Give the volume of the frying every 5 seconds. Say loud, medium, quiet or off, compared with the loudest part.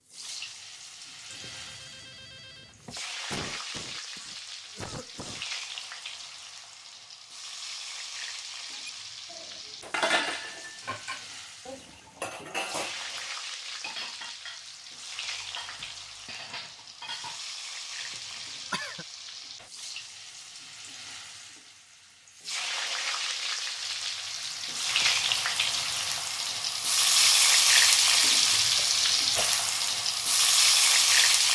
quiet, quiet, quiet, quiet, quiet, loud, loud.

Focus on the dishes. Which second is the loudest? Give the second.
10 s.